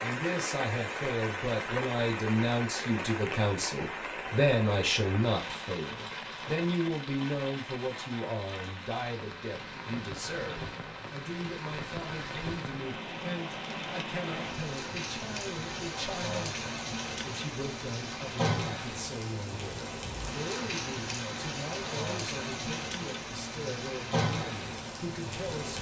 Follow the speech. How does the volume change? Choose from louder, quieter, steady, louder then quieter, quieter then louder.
quieter.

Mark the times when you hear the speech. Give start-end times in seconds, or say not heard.
0.0-25.7.